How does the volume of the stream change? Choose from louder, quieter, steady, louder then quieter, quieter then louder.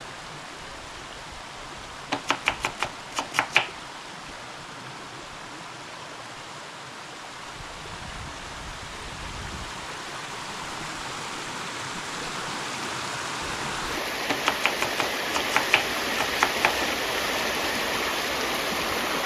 louder.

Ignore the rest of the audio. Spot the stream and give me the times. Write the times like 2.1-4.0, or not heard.
0.0-19.2.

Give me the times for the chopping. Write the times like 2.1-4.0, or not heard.
2.1-3.7, 14.2-16.9.